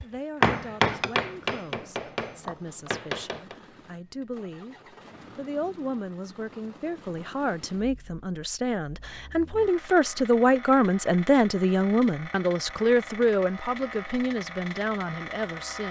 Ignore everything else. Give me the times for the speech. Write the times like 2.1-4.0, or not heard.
0.0-15.8.